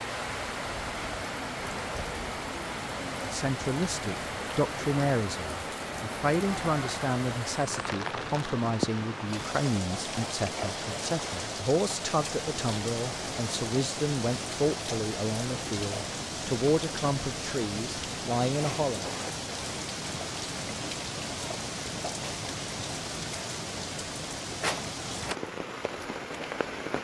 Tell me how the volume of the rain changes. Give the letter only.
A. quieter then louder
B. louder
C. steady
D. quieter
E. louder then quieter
C.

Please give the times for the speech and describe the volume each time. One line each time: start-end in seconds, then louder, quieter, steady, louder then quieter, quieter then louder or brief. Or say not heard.
3.2-19.1 steady.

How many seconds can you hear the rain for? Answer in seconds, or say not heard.
27 s.